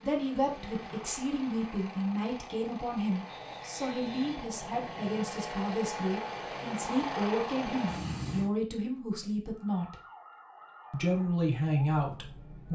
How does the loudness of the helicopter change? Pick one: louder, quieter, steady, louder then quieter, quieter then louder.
louder.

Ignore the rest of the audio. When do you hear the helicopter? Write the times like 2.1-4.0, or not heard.
0.0-8.5.